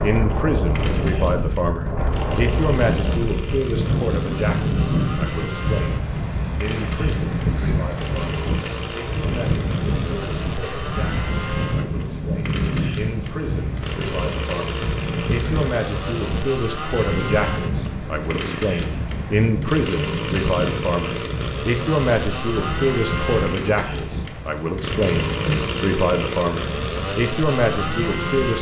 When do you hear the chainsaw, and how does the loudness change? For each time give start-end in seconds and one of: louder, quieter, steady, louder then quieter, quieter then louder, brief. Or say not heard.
0.0-28.5 louder.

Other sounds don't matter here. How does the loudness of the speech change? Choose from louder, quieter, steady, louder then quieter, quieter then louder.
quieter then louder.